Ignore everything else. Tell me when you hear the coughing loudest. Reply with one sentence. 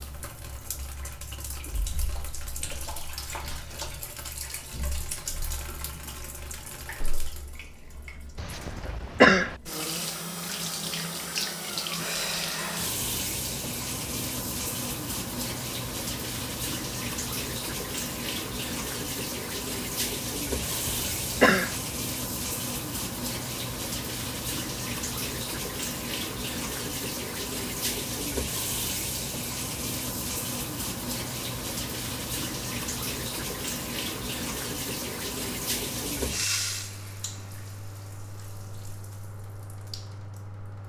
The volume of the coughing peaks at 9 seconds.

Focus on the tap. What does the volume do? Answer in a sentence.
The loudness of the tap goes up.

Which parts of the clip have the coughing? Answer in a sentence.
The coughing can be heard from 8.3 to 9.6 s and from 20.6 to 21.8 s.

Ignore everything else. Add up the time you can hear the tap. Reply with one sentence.
The tap can be heard for 41 seconds in total.